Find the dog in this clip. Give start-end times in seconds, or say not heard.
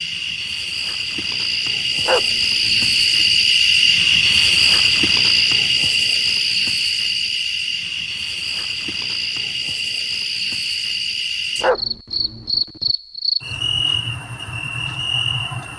2.0-3.4, 11.6-12.9.